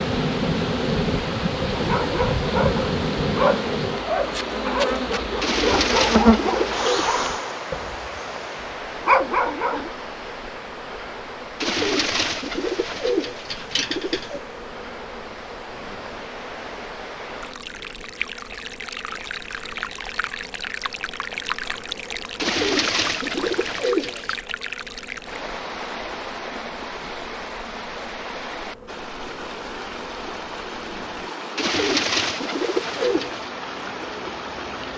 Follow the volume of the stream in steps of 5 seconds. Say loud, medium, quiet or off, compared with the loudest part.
loud, loud, medium, loud, loud, loud, loud.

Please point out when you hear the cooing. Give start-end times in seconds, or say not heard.
5.4-7.1, 11.6-14.4, 22.4-24.4, 31.6-33.5.